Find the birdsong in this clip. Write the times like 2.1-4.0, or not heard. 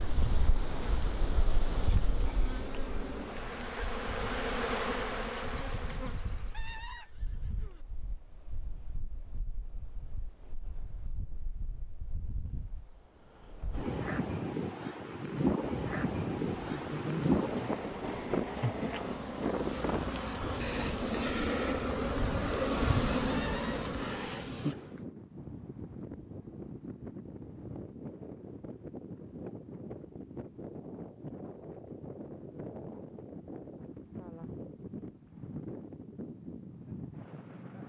not heard.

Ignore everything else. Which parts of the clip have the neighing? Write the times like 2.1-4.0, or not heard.
6.5-7.8, 23.2-23.9.